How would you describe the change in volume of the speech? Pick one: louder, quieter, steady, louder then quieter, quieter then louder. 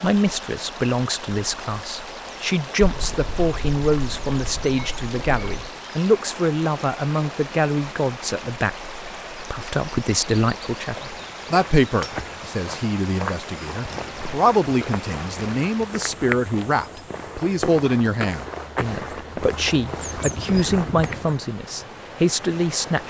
steady.